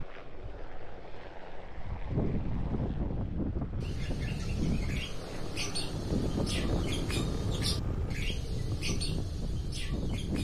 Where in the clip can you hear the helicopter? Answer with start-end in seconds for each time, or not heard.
0.0-8.2.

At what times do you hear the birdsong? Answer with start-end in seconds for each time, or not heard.
3.8-10.3.